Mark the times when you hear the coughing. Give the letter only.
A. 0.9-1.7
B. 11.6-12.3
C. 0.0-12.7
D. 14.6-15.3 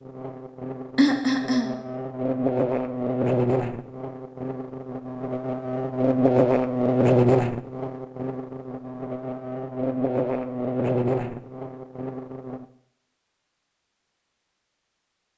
A.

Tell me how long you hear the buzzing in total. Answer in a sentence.
The buzzing can be heard for 13 seconds in total.